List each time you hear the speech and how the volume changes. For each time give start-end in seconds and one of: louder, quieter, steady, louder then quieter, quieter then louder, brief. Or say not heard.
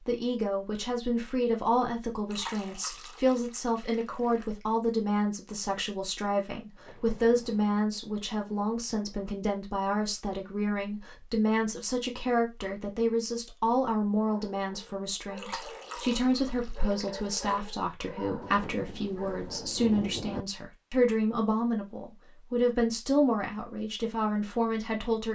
0.1-25.3 steady.